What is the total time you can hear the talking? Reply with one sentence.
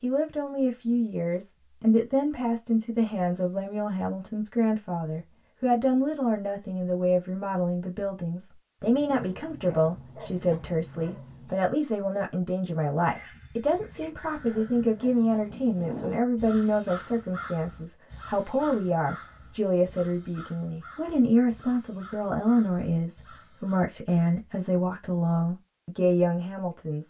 The talking can be heard for 27 seconds in total.